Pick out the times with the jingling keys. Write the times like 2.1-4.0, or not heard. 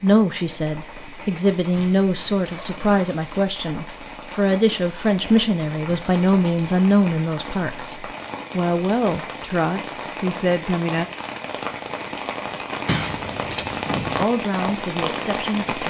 1.8-3.1, 5.8-6.8, 12.8-14.2.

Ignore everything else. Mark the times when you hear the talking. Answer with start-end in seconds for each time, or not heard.
0.0-11.1, 14.2-15.8.